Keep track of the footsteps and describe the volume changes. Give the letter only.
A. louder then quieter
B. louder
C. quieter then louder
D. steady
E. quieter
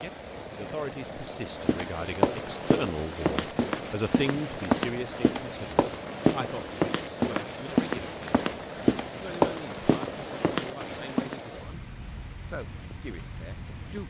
D.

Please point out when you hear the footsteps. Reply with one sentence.
You can hear the footsteps from 1.6 to 11.4 s.